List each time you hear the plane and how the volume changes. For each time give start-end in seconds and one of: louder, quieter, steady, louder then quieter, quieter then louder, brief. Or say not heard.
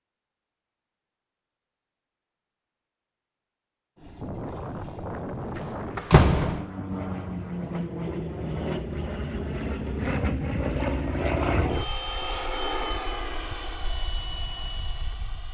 4.0-15.4 louder then quieter.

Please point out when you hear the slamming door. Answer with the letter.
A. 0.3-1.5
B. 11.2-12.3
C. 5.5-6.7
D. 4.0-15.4
C.